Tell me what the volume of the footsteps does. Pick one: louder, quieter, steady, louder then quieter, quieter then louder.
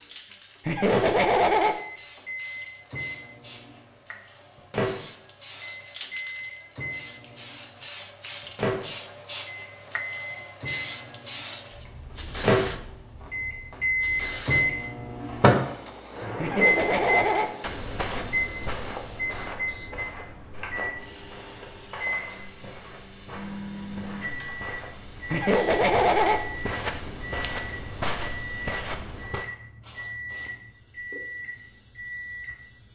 quieter then louder.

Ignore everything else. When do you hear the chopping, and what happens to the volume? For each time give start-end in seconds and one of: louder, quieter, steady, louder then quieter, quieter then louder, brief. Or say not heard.
not heard.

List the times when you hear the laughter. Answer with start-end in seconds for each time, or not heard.
0.7-1.8, 16.4-17.5, 25.3-26.4.